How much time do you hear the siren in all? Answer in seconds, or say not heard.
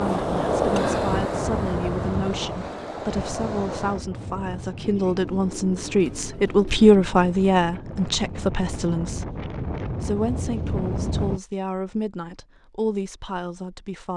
not heard.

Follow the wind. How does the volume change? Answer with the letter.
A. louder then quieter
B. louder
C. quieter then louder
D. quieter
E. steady
C.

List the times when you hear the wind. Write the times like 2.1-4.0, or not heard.
0.0-11.4.